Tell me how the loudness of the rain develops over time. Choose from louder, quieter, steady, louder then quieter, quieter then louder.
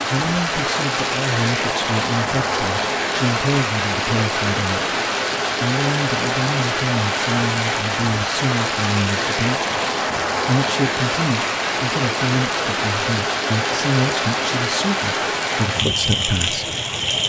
steady.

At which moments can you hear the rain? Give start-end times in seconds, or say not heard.
0.0-17.2.